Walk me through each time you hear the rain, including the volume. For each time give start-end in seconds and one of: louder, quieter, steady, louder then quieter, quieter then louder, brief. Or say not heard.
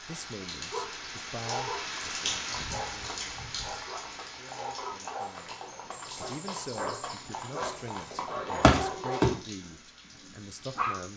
0.0-11.1 quieter.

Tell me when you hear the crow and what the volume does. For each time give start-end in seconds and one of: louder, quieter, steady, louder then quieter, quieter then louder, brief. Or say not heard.
not heard.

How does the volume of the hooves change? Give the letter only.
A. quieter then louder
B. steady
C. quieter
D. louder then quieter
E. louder
E.